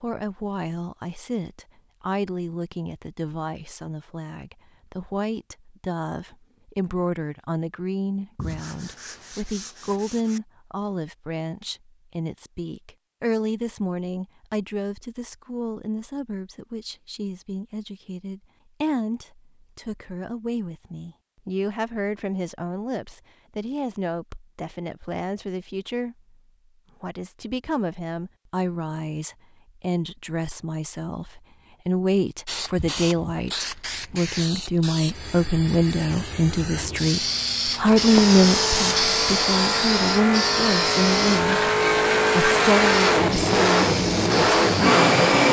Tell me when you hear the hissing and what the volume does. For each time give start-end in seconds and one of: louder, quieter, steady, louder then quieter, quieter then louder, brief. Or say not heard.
32.5-45.4 louder then quieter.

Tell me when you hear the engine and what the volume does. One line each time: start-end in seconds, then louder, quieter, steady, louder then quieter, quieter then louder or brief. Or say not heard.
37.8-45.4 louder.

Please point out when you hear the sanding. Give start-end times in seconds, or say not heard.
8.3-10.4.